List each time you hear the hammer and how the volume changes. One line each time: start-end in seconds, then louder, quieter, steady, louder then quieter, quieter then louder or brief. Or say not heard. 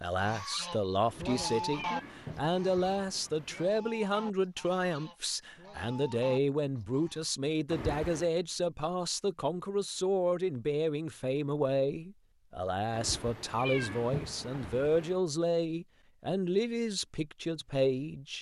not heard.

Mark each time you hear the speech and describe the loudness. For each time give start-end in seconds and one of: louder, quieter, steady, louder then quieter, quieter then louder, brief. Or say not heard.
0.0-18.3 steady.